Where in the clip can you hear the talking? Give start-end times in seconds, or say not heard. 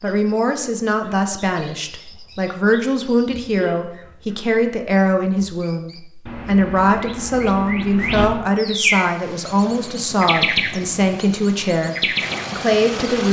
0.0-13.2.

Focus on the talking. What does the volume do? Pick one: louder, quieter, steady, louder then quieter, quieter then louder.
steady.